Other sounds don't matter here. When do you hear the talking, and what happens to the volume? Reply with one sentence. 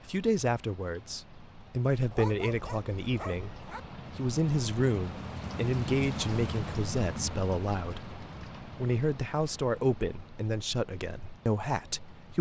The talking can be heard from 0.1 to 12.3 s, at a steady volume.